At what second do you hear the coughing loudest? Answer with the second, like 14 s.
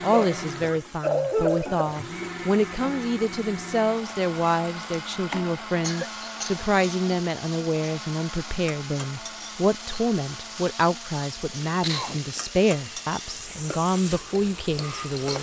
1 s.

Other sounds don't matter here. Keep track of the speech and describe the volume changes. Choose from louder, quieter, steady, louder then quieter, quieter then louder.
steady.